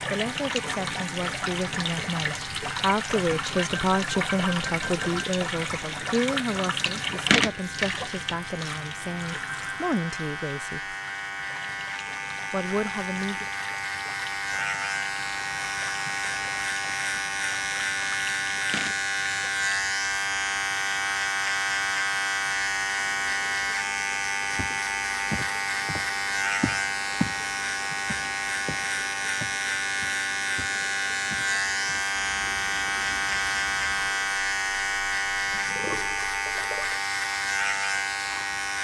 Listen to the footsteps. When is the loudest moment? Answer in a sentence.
The loudest moment of the footsteps is at 27 seconds.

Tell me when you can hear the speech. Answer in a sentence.
You can hear the speech from 0.1 to 10.9 s and from 12.5 to 13.4 s.